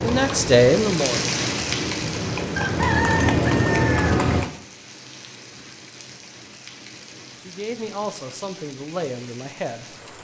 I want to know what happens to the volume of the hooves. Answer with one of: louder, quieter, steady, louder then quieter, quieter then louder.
louder.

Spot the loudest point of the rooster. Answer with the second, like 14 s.
3 s.